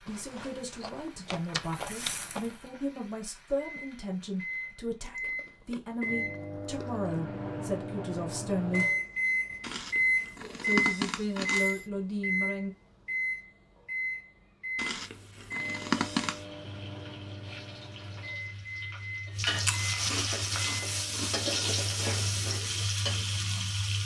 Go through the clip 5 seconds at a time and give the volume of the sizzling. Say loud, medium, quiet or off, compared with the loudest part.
quiet, off, off, medium, loud.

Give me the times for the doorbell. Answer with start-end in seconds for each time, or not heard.
not heard.